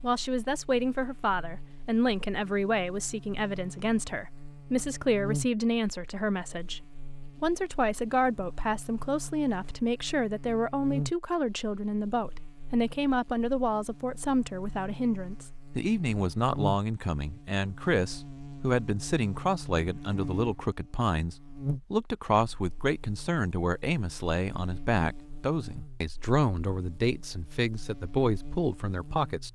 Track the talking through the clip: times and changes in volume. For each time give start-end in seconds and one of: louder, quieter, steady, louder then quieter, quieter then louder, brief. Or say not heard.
0.0-29.5 steady.